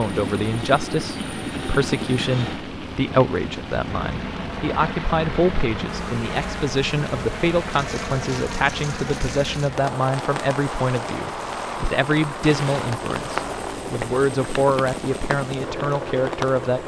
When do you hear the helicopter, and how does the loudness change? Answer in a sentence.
The helicopter can be heard from 0.0 to 16.8 s, at a steady volume.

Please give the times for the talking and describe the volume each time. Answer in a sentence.
You can hear the talking from 0.0 to 16.8 s, at a steady volume.